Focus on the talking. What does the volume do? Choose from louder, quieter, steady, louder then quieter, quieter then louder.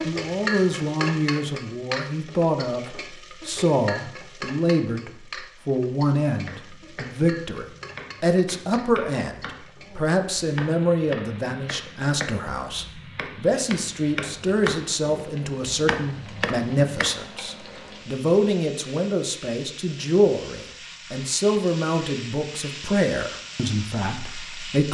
steady.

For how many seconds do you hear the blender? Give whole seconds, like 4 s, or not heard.
not heard.